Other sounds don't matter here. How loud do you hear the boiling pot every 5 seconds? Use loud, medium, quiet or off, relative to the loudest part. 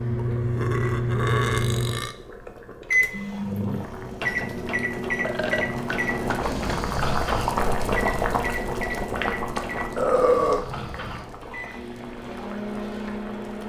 quiet, loud, quiet.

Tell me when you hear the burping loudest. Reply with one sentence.
The loudest moment of the burping is at 10 seconds.